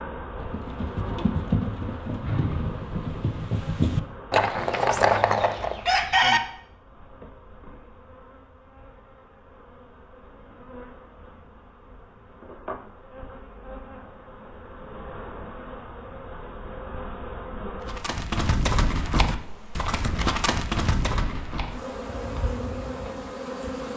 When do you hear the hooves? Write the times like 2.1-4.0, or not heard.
0.3-5.8, 17.9-23.3.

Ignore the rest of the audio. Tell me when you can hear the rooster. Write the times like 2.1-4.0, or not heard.
5.0-6.4.